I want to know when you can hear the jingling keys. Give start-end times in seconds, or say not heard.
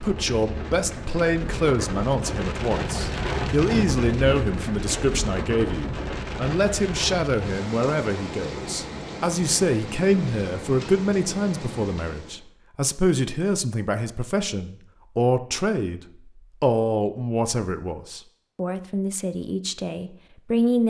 not heard.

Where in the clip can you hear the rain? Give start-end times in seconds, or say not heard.
0.0-12.4.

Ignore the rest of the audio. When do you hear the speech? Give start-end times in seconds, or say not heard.
0.0-16.0, 16.6-20.8.